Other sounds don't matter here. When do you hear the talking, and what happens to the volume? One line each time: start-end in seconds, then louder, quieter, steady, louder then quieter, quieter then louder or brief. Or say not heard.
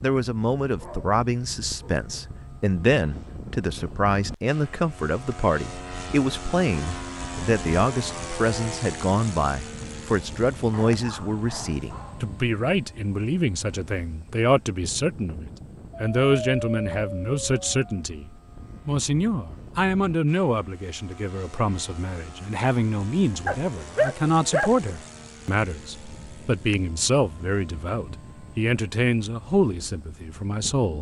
0.0-30.9 steady.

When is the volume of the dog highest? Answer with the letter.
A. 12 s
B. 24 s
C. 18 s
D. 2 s
B.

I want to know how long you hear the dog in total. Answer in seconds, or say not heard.
7 s.